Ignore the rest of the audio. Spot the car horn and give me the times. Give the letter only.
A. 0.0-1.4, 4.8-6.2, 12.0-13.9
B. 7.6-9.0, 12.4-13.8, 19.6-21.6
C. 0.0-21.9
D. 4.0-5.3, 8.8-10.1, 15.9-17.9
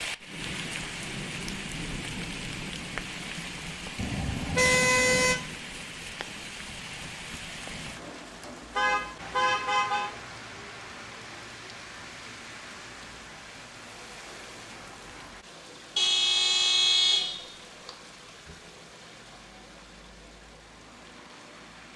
D.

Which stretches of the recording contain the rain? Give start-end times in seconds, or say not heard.
0.0-21.9.